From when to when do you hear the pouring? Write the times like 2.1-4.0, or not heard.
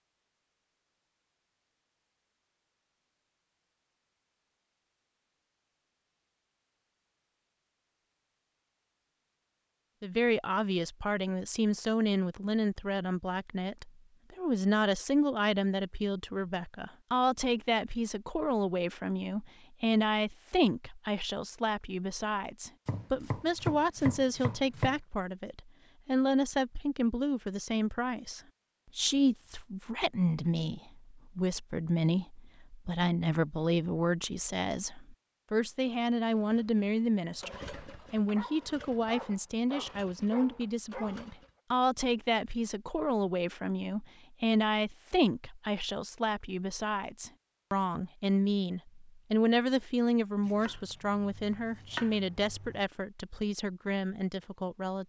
not heard.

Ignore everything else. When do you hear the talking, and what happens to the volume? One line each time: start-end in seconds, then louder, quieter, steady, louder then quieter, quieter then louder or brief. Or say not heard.
10.0-55.0 steady.